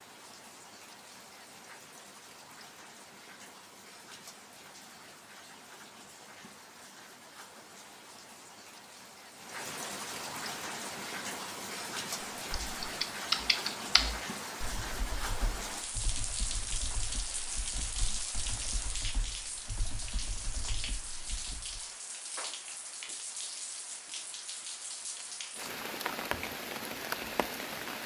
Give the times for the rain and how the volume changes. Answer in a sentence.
You can hear the rain from 0.0 to 28.0 s, getting louder.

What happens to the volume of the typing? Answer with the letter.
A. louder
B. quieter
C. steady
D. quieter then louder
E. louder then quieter
B.